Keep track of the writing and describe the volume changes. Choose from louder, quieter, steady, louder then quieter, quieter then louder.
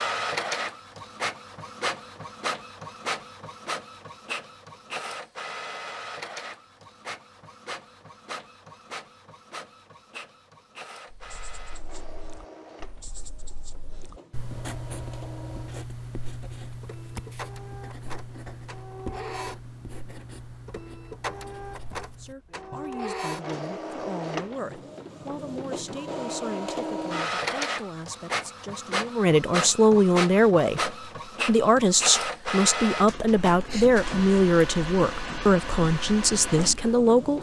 louder then quieter.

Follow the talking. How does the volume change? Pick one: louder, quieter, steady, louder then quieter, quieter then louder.
louder.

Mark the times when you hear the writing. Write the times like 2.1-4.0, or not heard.
11.1-22.9.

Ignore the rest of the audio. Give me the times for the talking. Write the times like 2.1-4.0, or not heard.
22.1-37.3.